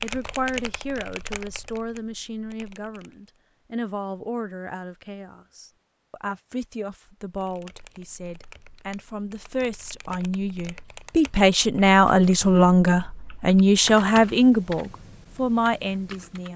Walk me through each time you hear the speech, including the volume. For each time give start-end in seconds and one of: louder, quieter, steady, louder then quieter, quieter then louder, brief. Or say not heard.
0.0-16.5 louder.